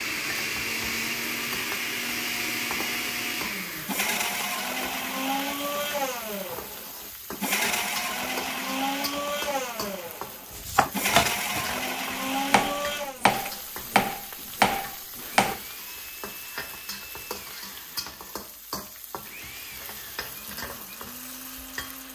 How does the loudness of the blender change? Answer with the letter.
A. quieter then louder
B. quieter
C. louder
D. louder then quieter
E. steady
B.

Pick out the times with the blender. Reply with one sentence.
You can hear the blender from 0.0 to 22.1 s.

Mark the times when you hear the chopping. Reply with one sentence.
The chopping can be heard from 10.6 to 11.7 s and from 12.5 to 15.6 s.